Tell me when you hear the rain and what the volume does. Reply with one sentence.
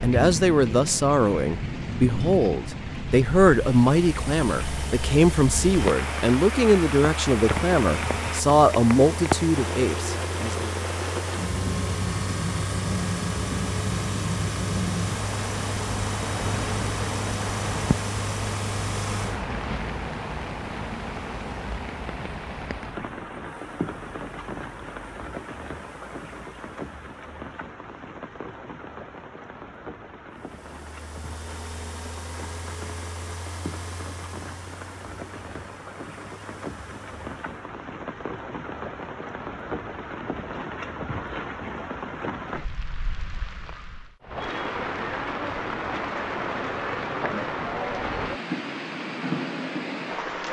The rain can be heard from 0.0 to 50.4 s, getting quieter then louder.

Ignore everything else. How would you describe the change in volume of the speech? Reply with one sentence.
The volume of the speech stays about the same.